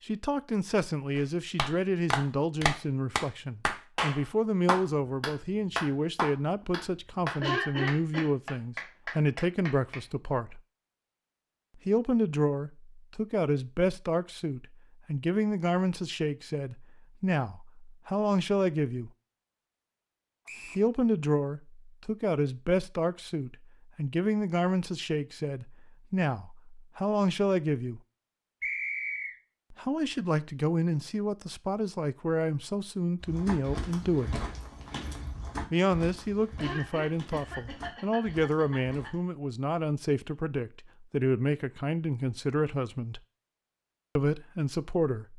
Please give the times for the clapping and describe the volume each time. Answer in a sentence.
You can hear the clapping from 1.1 to 10.1 s, getting quieter.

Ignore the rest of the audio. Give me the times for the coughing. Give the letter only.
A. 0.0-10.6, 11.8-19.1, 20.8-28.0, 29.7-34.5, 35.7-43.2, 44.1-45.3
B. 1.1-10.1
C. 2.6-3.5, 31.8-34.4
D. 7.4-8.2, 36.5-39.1
D.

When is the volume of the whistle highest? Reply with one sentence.
The volume of the whistle peaks at 29 seconds.